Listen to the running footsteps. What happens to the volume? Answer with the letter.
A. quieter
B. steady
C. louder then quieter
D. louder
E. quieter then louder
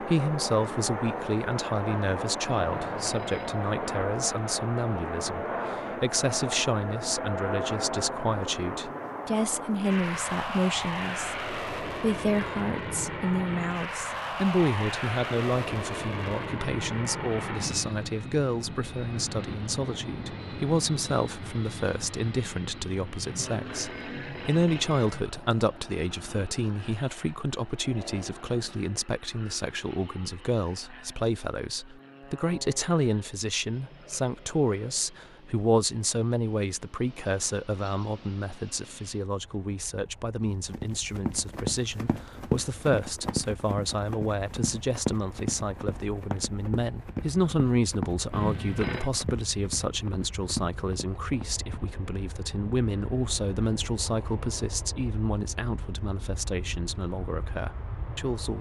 A.